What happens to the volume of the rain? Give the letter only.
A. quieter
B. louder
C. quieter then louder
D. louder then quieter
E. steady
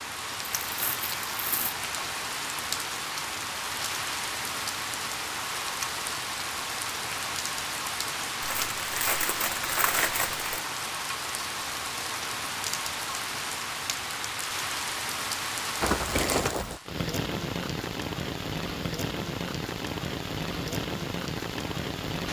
E.